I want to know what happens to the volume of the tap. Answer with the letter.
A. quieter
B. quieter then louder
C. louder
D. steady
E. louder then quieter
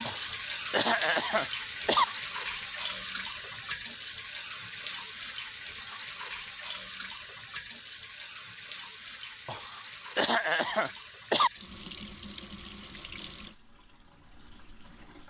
A.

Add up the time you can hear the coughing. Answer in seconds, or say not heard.
4 s.